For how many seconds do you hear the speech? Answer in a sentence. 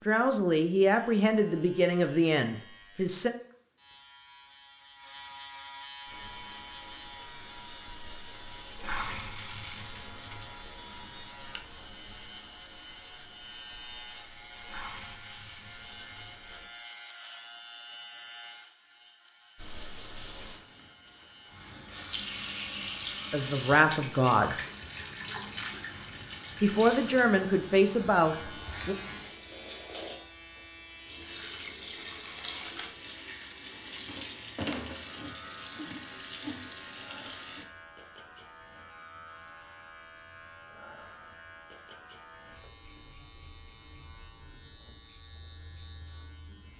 The speech can be heard for 7 seconds in total.